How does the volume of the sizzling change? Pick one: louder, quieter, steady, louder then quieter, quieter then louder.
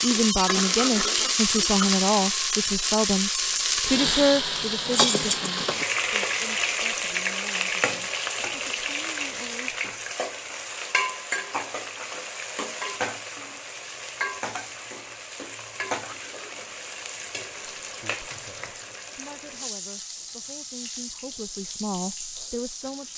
quieter.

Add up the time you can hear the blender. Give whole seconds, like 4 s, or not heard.
not heard.